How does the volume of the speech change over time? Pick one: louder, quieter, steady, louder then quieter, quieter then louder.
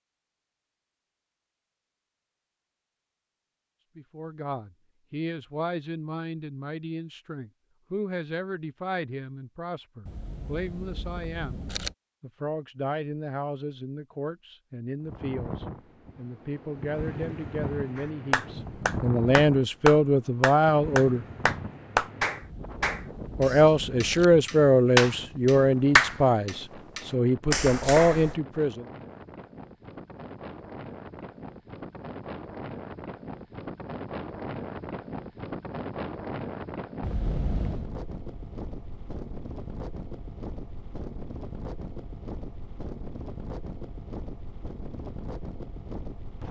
louder.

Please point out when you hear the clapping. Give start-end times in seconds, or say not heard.
17.9-28.4.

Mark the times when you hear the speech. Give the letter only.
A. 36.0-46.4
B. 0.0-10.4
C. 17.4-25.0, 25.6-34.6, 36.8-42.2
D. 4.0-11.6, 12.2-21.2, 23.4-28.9
D.